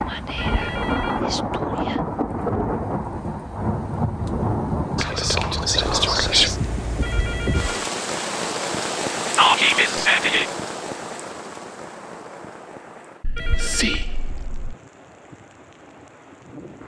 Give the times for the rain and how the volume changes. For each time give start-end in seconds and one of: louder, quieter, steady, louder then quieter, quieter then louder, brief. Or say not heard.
0.0-16.8 quieter.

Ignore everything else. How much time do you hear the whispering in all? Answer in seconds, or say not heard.
6 s.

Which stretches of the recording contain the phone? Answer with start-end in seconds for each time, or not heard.
0.3-1.2, 7.0-7.8, 13.3-14.1.